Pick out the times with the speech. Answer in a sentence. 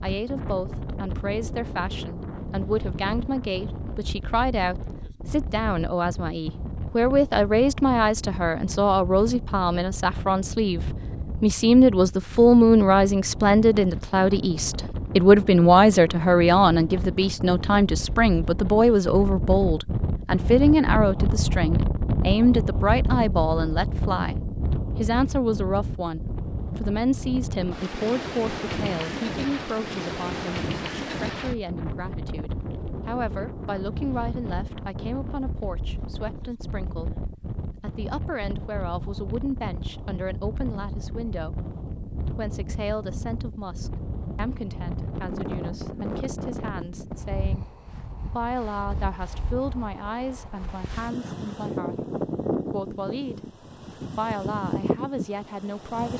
You can hear the speech from 0.0 to 24.4 s, from 24.9 to 47.6 s, from 48.2 to 52.0 s, from 52.6 to 53.4 s and from 54.1 to 56.1 s.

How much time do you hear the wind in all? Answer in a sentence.
You can hear the wind for 56 seconds altogether.